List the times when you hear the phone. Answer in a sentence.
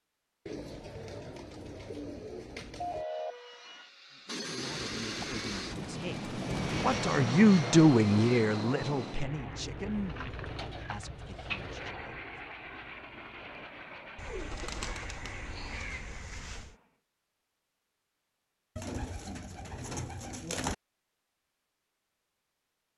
The phone can be heard from 2.8 to 3.4 s.